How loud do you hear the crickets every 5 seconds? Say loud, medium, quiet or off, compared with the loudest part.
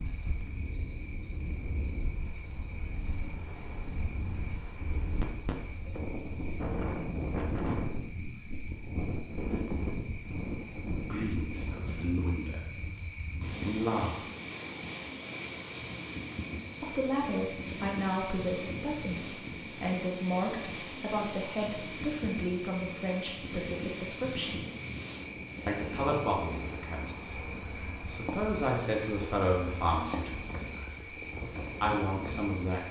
medium, medium, loud, loud, loud, loud, loud.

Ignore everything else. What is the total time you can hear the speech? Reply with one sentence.
The speech can be heard for 16 seconds in total.